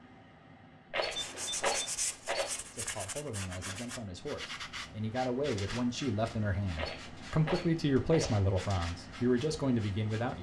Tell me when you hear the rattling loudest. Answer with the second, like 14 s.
2 s.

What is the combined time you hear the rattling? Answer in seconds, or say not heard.
3 s.